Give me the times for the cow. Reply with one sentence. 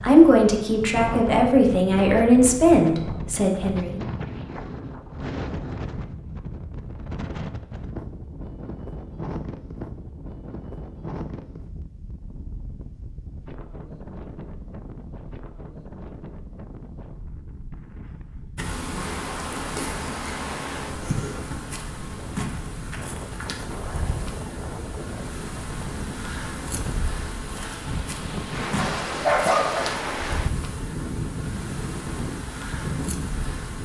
You can't hear the cow here.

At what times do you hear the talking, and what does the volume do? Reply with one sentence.
The talking can be heard from 0.0 to 4.0 s, getting louder then quieter.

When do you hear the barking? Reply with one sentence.
The barking can be heard from 28.8 to 29.9 s.